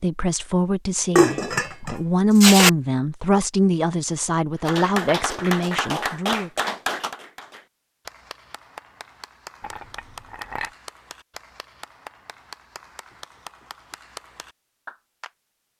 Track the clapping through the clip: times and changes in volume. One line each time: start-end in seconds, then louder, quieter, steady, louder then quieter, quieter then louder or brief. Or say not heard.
4.7-15.3 quieter.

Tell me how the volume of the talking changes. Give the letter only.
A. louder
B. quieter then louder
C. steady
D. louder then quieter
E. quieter
D.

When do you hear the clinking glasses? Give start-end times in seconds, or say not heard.
1.1-2.7, 9.6-10.7.